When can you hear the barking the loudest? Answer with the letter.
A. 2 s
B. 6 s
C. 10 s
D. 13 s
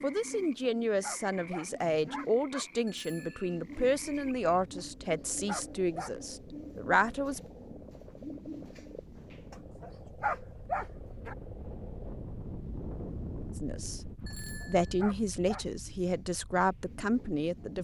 C.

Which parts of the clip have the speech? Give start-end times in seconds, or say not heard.
0.0-7.4, 13.6-17.7.